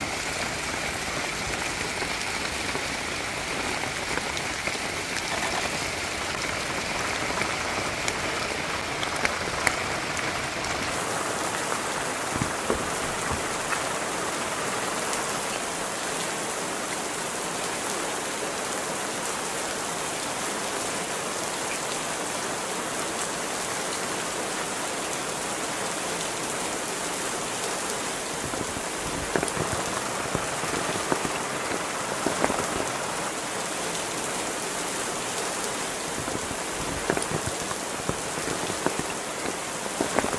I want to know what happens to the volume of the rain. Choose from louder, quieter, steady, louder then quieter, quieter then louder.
steady.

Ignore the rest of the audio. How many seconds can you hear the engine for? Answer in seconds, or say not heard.
14 s.